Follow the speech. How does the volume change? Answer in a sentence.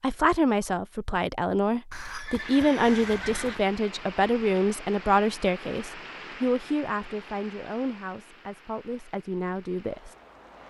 The loudness of the speech goes down.